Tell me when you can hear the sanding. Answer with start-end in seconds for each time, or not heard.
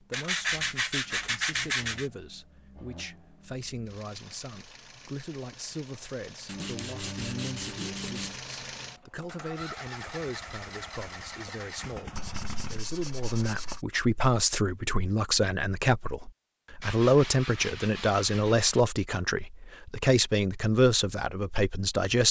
0.1-2.0, 6.5-8.3, 12.2-13.8, 16.8-18.9.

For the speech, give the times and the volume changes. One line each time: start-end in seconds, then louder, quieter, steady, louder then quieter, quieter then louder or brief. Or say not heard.
0.0-22.2 louder.